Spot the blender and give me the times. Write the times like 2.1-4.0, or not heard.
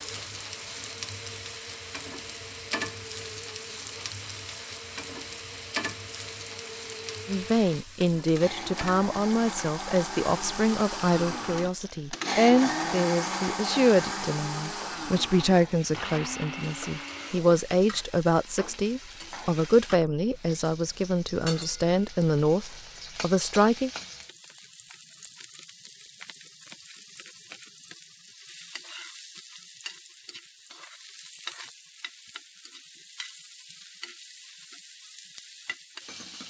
0.0-17.4.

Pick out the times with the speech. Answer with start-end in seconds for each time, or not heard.
7.2-23.9.